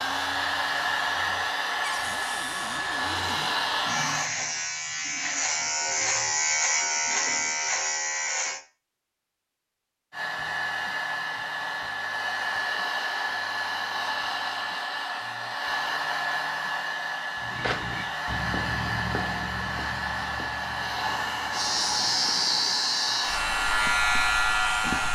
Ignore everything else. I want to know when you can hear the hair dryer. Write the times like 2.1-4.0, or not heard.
0.0-4.3, 10.1-25.0.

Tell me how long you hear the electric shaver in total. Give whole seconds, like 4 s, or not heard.
12 s.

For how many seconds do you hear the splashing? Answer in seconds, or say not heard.
not heard.